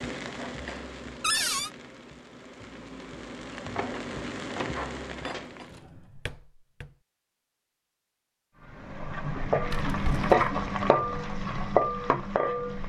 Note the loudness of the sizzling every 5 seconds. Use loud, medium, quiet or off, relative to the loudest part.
quiet, medium, loud.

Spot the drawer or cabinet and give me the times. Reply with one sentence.
You can hear the drawer or cabinet from 1.2 to 1.7 s, from 5.6 to 6.9 s and from 9.7 to 10.5 s.